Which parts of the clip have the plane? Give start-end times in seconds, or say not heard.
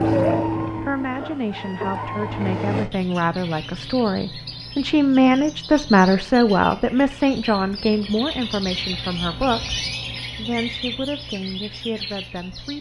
0.0-2.9.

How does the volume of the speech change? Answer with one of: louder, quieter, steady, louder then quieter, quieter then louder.
louder then quieter.